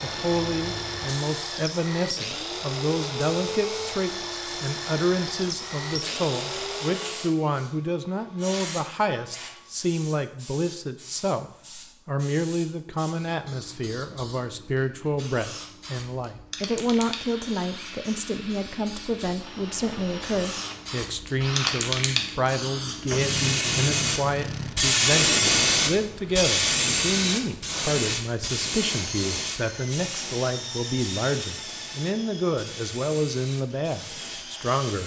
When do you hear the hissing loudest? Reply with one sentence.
The volume of the hissing peaks at 25 seconds.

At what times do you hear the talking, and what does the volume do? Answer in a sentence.
You can hear the talking from 0.0 to 35.0 s, at a steady volume.